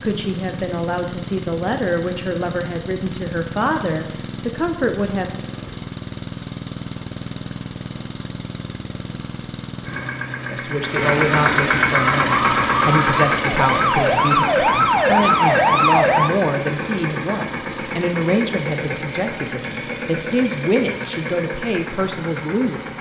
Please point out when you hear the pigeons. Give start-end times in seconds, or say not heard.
not heard.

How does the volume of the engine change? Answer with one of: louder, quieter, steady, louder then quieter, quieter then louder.
louder then quieter.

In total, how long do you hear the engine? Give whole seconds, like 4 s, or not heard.
23 s.